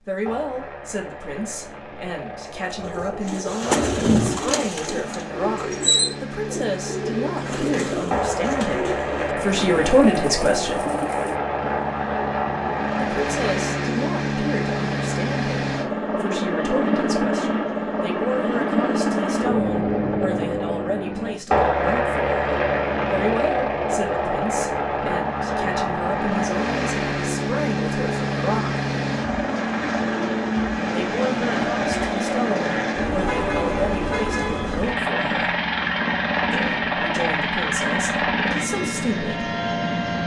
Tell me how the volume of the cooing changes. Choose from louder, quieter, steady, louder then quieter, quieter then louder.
quieter.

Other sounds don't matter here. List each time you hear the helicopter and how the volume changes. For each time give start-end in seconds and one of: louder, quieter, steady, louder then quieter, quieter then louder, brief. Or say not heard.
0.1-40.2 louder.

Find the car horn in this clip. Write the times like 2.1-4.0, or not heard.
33.2-34.8.